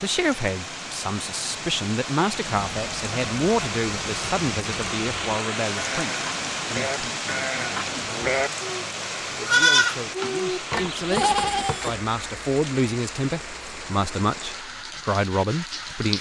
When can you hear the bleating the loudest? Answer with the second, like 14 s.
10 s.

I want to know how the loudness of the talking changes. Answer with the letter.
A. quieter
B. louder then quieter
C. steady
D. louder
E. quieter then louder
E.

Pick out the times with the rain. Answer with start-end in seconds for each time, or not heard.
0.0-16.1.